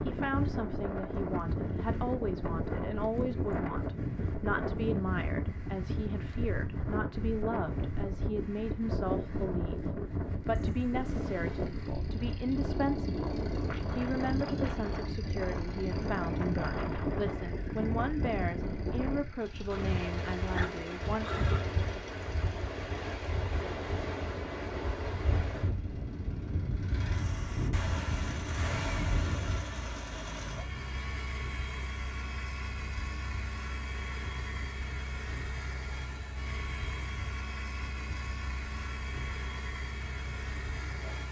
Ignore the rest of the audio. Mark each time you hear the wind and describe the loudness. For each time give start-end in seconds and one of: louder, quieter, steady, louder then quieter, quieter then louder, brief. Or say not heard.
0.0-41.2 quieter.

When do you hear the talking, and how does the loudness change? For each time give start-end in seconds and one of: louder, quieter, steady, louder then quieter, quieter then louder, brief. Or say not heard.
0.1-21.3 steady.